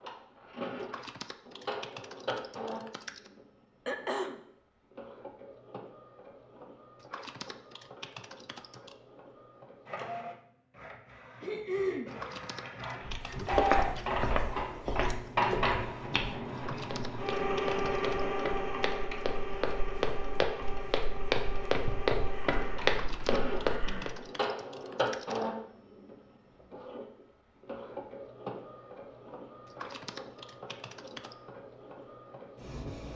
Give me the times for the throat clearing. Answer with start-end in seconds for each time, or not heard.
3.9-4.3, 11.4-12.1, 22.4-24.3.